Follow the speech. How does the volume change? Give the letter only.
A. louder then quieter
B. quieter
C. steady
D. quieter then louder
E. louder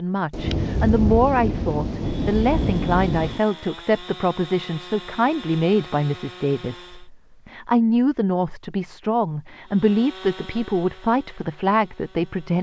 C.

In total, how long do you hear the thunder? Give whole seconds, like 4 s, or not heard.
3 s.